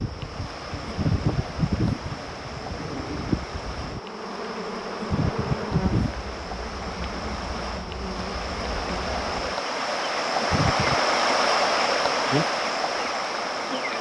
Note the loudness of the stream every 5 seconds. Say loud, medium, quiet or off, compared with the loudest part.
quiet, medium, loud.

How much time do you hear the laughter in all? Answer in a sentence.
The laughter can be heard for 3 seconds in total.